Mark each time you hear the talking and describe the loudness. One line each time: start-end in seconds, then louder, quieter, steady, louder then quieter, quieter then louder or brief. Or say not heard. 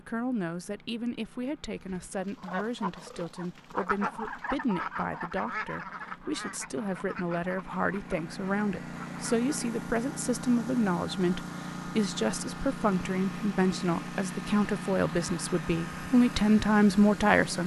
0.0-17.6 louder.